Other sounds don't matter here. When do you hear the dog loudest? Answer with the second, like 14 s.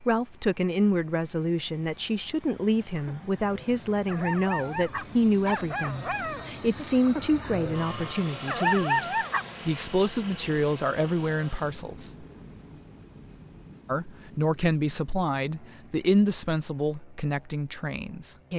9 s.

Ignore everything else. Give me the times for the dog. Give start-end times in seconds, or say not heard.
3.0-9.4.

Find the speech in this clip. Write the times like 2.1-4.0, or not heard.
0.0-12.2, 13.8-18.5.